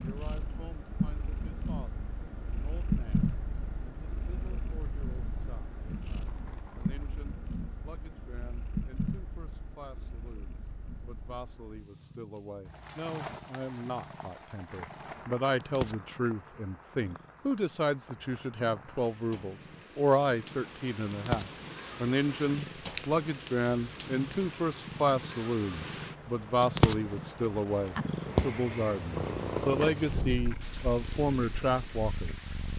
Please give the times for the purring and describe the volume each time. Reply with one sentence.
You can hear the purring from 0.0 to 32.7 s, getting quieter then louder.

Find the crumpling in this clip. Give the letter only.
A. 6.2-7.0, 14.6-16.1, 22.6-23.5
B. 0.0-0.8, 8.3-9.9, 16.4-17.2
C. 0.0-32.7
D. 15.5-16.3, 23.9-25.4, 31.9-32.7
A.